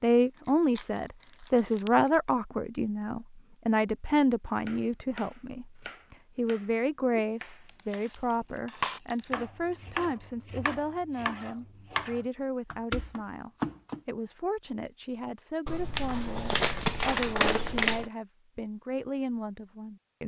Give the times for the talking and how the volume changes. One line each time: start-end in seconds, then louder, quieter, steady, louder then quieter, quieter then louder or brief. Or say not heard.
0.0-20.2 quieter.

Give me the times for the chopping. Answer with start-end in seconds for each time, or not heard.
4.7-14.0.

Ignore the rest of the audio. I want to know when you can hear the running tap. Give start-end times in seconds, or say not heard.
not heard.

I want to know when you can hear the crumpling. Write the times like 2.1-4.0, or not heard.
0.2-2.2, 7.7-9.4, 15.7-18.1.